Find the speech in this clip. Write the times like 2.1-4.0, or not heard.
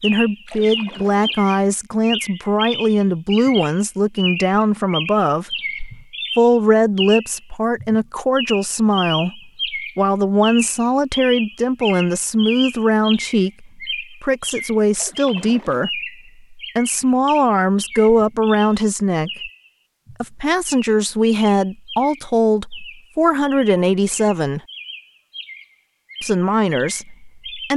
0.0-5.5, 6.3-19.5, 20.2-24.6, 26.2-27.7.